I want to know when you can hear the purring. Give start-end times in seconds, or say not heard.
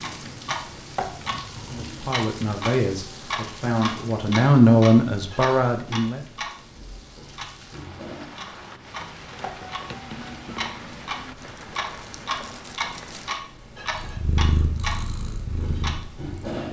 13.8-16.6.